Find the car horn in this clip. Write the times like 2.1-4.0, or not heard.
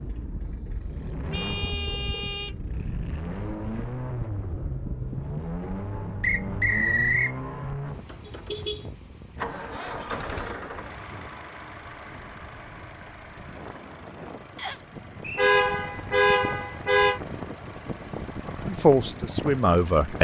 1.3-2.5, 8.2-8.9, 15.3-17.2.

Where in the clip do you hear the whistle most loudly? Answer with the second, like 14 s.
7 s.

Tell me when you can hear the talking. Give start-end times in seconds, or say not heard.
18.6-20.1.